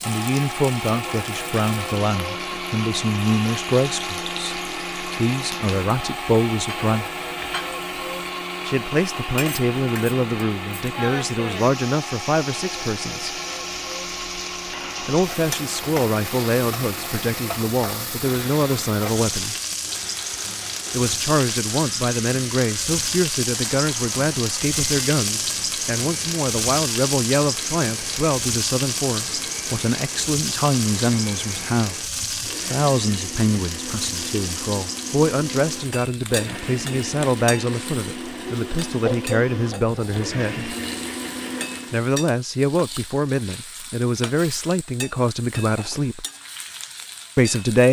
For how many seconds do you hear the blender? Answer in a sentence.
You can hear the blender for 42 seconds altogether.